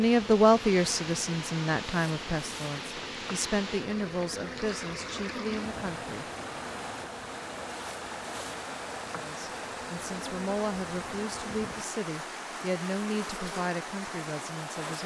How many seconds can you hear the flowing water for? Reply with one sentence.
You can hear the flowing water for 15 seconds altogether.